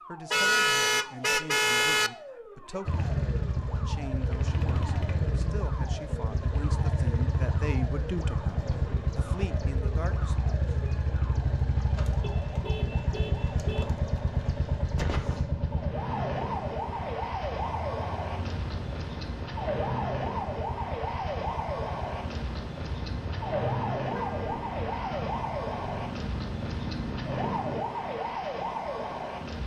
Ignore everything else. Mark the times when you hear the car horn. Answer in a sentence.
You can hear the car horn from 0.3 to 2.1 s, from 12.2 to 13.8 s and from 23.6 to 24.6 s.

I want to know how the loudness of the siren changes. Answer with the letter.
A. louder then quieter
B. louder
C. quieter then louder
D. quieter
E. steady
B.